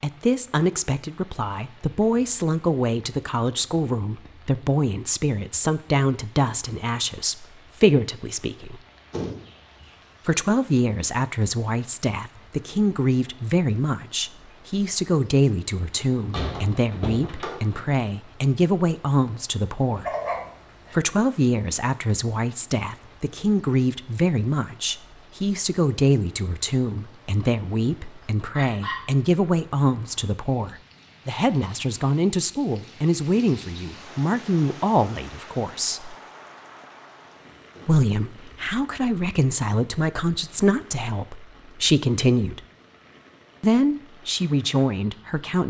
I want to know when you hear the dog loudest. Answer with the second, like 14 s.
20 s.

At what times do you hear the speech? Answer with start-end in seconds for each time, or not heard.
0.0-8.8, 10.2-20.1, 20.9-36.1, 37.9-42.6, 43.6-45.6.